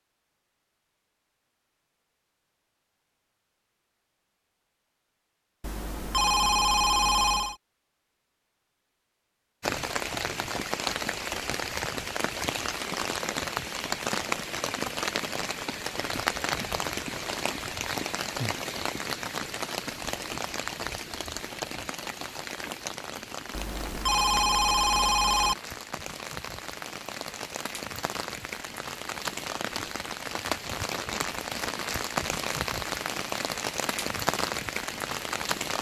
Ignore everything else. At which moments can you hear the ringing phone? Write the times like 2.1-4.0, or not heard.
5.6-7.5, 23.6-25.6.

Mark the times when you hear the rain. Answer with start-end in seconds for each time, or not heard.
9.6-35.7.